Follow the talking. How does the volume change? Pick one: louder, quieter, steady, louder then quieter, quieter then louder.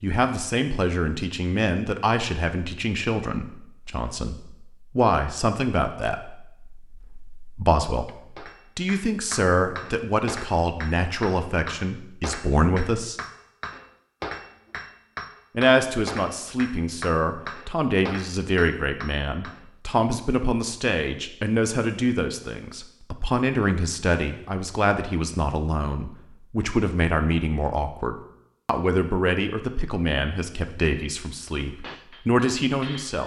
steady.